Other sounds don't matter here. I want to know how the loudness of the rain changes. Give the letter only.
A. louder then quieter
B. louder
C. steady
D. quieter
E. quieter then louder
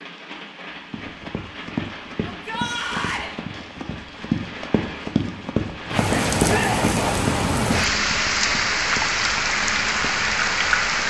B.